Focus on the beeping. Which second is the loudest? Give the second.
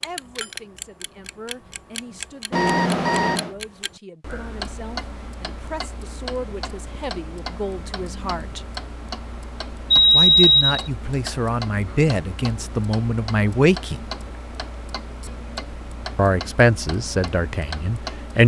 10 s.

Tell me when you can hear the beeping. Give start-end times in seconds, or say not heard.
2.5-3.5, 9.9-10.9.